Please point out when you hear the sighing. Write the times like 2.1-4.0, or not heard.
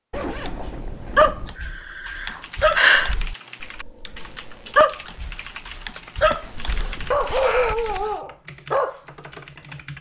1.6-3.1, 6.2-7.8.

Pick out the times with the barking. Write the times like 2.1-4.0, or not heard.
0.5-8.9.